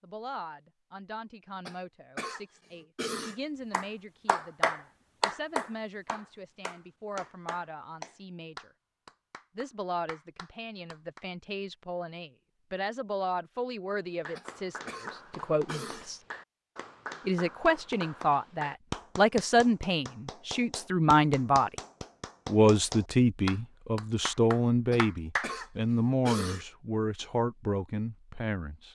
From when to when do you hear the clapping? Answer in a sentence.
The clapping can be heard from 3.7 to 11.2 s and from 14.2 to 25.6 s.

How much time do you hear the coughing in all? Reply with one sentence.
The coughing can be heard for 5 seconds in total.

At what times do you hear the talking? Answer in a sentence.
You can hear the talking from 0.0 to 8.7 s, from 9.6 to 16.2 s, from 17.2 to 21.7 s and from 22.4 to 28.8 s.